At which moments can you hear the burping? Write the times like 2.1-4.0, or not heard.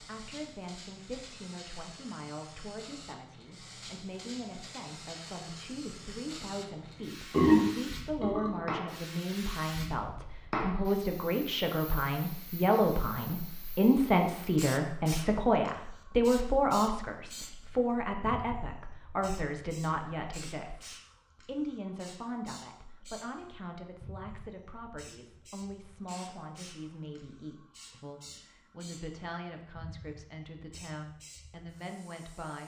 7.3-8.6.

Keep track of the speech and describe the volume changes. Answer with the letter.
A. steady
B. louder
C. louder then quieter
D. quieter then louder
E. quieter
C.